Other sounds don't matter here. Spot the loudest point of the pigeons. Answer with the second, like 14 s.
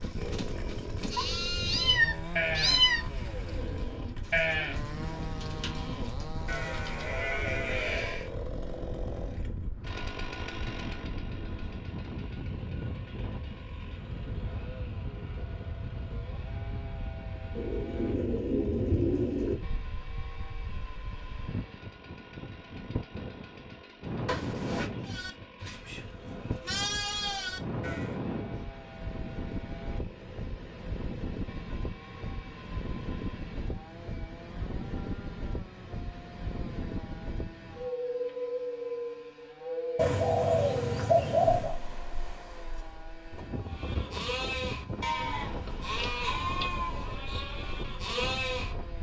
41 s.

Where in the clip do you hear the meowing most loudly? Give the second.
3 s.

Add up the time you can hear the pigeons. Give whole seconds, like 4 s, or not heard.
7 s.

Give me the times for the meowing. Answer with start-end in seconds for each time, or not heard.
1.1-3.0, 24.2-24.9, 45.6-46.7.